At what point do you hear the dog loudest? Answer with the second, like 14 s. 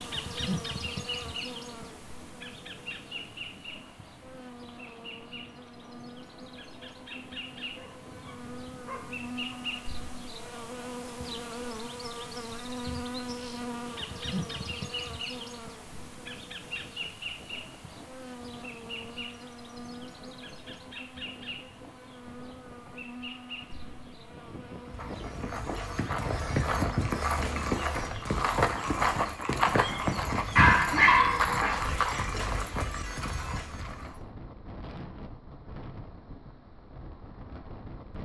31 s.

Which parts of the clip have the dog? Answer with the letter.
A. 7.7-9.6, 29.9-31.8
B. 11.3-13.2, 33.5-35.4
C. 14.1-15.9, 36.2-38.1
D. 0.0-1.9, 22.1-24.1
A.